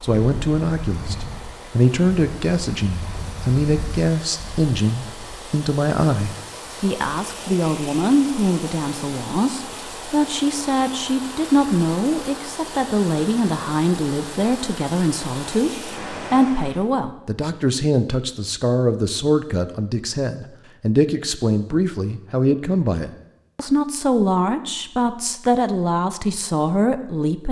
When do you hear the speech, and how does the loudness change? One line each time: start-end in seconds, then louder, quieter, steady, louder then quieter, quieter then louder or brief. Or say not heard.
0.0-27.4 steady.